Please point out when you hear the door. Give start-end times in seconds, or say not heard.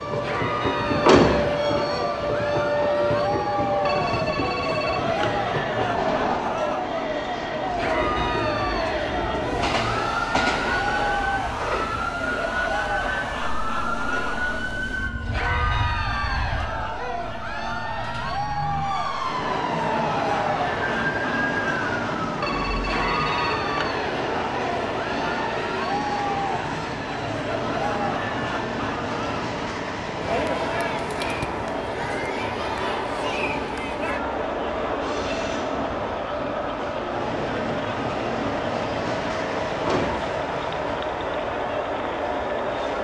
1.0-1.9, 39.8-40.2.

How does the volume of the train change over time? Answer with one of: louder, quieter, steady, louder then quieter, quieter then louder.
steady.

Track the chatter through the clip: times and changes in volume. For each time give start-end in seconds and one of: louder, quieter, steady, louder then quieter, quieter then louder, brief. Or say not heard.
0.1-43.0 steady.